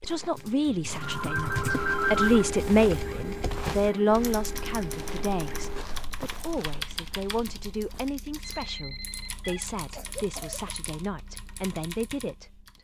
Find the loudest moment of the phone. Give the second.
2 s.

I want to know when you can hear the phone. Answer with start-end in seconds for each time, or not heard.
1.0-2.5, 8.4-9.7.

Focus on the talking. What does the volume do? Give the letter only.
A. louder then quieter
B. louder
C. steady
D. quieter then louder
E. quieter
E.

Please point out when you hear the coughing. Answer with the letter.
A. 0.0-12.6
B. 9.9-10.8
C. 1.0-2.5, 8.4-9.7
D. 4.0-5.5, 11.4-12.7
B.